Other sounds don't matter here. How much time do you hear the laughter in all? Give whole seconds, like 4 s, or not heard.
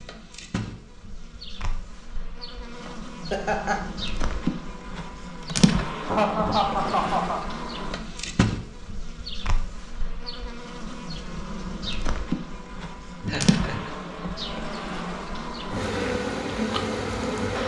3 s.